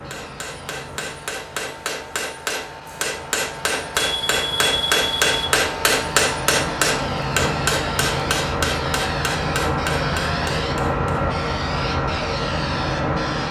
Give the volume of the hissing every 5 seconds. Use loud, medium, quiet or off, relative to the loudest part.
quiet, loud, loud.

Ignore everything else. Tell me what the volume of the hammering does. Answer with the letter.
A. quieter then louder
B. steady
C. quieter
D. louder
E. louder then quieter
E.